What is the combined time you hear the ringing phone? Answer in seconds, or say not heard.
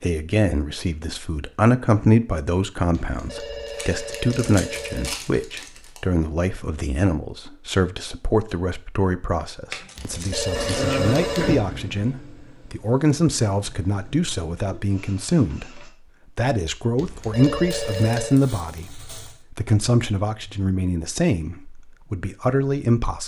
5 s.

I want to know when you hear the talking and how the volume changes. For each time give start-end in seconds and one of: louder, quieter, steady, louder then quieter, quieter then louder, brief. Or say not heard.
0.0-23.2 steady.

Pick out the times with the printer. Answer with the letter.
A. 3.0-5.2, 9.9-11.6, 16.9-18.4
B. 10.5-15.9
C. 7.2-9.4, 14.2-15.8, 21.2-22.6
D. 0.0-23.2
B.